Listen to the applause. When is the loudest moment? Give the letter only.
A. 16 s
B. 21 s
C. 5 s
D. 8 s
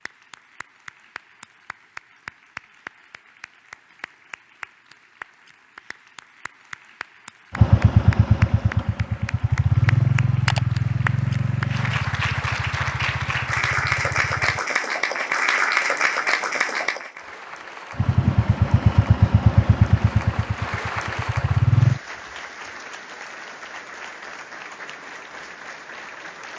A.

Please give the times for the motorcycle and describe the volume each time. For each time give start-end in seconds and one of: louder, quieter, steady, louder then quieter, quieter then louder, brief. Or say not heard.
7.5-14.7 quieter
17.9-22.0 quieter then louder.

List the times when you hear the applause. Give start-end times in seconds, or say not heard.
0.0-26.5.